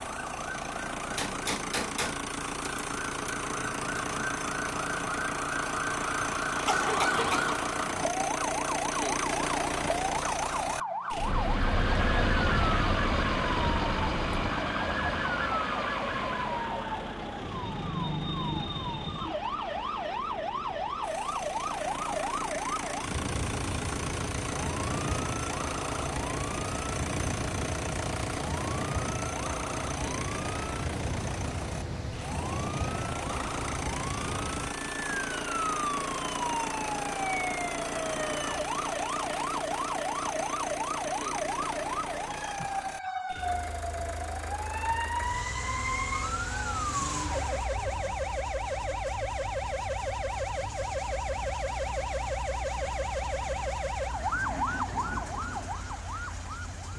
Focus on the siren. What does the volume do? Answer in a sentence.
The loudness of the siren stays about the same.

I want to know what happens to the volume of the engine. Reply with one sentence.
The volume of the engine goes down.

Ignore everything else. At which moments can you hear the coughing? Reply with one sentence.
The coughing can be heard from 6.7 to 7.5 s.